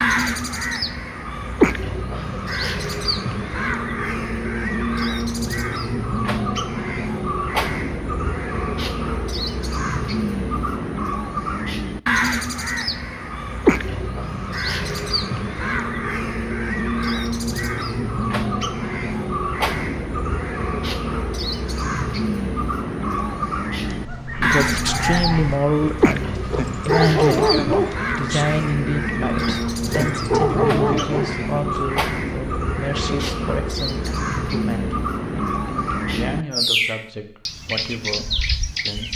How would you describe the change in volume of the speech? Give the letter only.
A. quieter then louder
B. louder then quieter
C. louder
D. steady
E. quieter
E.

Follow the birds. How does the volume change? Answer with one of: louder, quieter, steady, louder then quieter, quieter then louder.
steady.